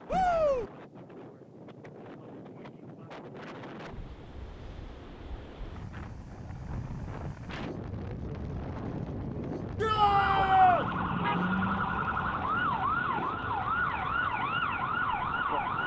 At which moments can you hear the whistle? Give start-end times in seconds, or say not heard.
not heard.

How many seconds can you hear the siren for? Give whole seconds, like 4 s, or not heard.
6 s.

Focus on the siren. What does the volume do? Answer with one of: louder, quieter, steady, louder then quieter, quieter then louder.
steady.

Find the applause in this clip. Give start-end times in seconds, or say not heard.
not heard.